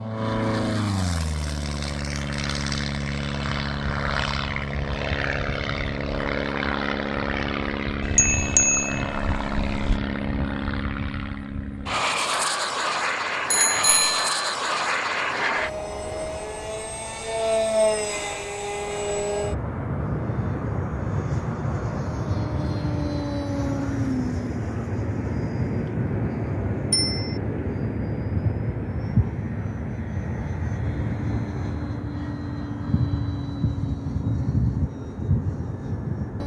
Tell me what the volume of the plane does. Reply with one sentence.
The volume of the plane stays about the same.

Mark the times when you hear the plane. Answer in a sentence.
You can hear the plane from 0.0 to 36.4 s.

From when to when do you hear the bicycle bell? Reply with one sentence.
The bicycle bell can be heard from 8.0 to 10.0 s, from 13.5 to 14.4 s and from 26.9 to 27.4 s.